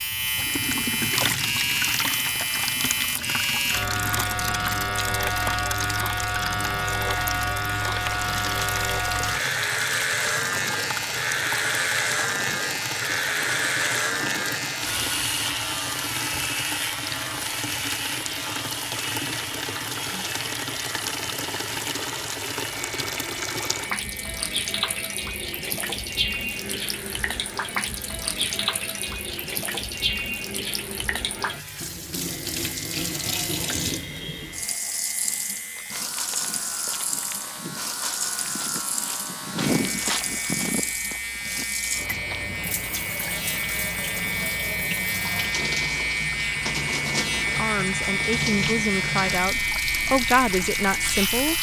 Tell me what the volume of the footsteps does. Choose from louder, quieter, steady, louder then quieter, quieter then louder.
louder then quieter.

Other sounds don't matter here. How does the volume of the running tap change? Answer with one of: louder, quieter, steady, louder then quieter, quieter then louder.
steady.